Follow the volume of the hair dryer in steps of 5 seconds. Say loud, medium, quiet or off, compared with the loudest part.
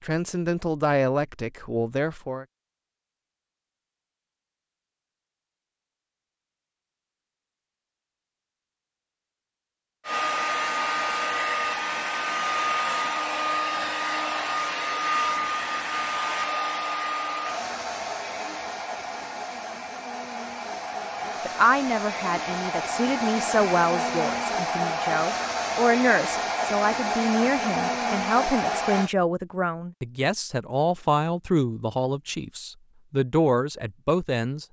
off, off, loud, loud, loud, loud, off.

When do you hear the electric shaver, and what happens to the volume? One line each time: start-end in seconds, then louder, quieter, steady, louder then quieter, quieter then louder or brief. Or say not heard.
not heard.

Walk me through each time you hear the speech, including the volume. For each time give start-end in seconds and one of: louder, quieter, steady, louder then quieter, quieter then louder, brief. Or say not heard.
0.0-2.5 brief
21.4-34.6 steady.